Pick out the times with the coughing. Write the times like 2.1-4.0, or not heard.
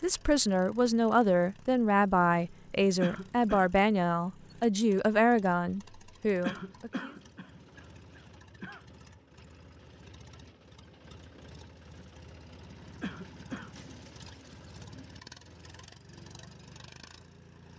3.0-3.7, 6.4-8.8, 13.0-13.8.